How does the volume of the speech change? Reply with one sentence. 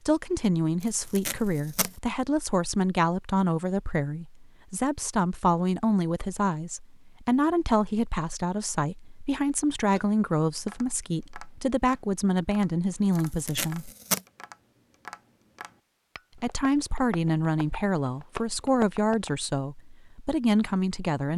The loudness of the speech stays about the same.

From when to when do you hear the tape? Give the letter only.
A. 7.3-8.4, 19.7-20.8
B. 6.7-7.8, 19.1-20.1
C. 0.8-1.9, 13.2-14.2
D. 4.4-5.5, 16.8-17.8
C.